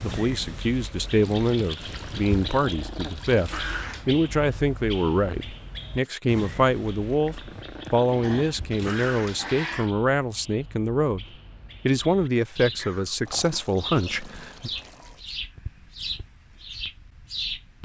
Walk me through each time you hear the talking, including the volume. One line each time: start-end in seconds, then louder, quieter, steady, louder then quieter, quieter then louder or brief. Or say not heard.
0.0-11.2 steady
11.8-14.7 brief.